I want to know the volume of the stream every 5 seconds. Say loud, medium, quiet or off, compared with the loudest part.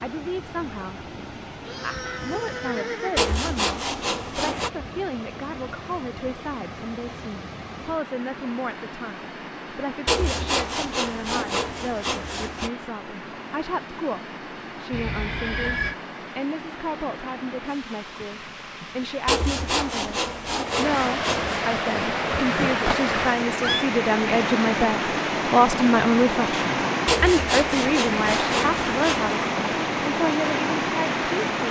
quiet, quiet, quiet, quiet, loud, loud, loud.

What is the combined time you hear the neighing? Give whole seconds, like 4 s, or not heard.
4 s.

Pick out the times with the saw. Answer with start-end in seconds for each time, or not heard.
3.1-4.7, 10.1-12.7, 19.2-21.6, 27.1-29.4.